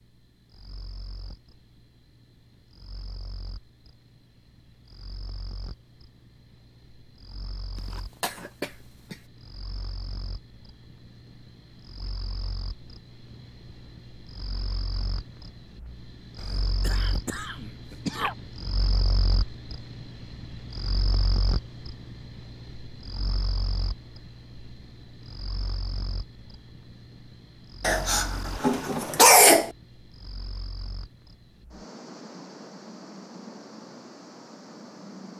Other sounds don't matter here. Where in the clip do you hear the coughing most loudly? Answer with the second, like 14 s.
29 s.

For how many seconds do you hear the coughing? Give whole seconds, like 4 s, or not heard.
5 s.